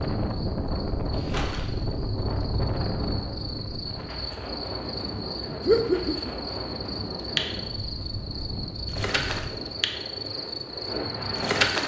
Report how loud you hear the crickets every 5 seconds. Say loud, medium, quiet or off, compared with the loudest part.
medium, medium, loud.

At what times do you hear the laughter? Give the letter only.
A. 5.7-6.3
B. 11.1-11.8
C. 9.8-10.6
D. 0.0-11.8
A.